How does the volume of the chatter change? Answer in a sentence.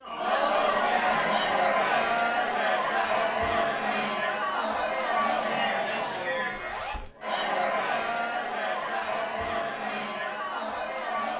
The volume of the chatter goes down.